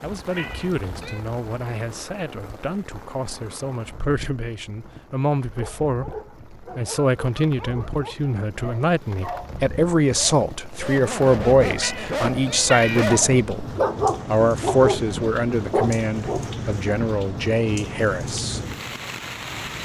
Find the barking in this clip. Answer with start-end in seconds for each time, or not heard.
5.4-16.9.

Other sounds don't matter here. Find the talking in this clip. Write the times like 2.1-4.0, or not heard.
0.0-13.7, 14.2-18.6.